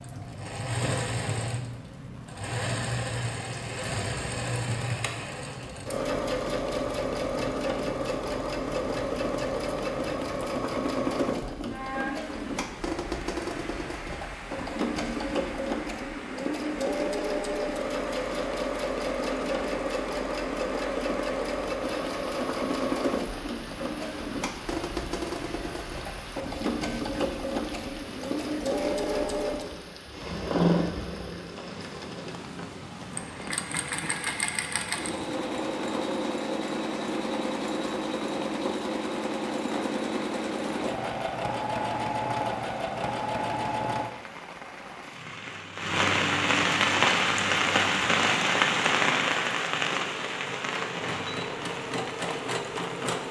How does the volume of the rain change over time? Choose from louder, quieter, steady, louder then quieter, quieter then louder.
louder.